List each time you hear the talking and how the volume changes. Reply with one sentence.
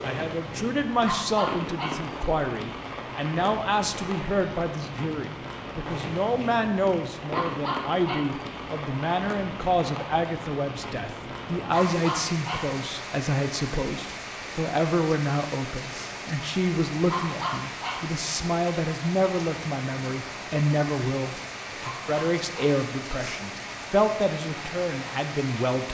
The talking can be heard from 0.0 to 25.8 s, at a steady volume.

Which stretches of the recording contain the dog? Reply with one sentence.
The dog can be heard from 1.1 to 2.1 s, from 7.3 to 8.4 s, from 11.7 to 12.8 s, from 17.1 to 18.1 s and from 21.8 to 22.7 s.